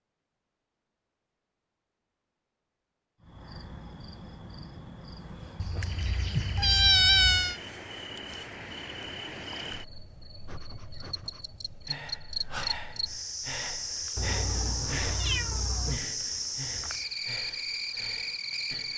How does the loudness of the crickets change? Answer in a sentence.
The volume of the crickets goes up.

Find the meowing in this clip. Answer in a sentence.
You can hear the meowing from 5.5 to 7.5 s and from 14.2 to 16.0 s.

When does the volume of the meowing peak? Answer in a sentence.
The loudest moment of the meowing is at 7 seconds.